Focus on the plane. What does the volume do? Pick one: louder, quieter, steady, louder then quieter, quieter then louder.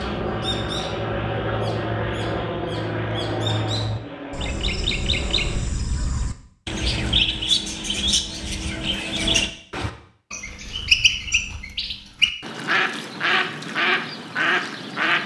quieter.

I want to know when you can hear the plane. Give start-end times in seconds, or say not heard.
0.0-5.8.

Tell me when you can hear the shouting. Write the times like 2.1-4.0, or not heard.
not heard.